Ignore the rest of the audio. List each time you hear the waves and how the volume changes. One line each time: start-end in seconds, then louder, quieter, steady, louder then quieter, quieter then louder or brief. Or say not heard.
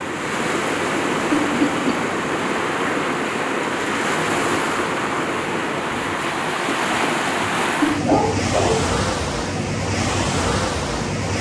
0.0-11.3 steady.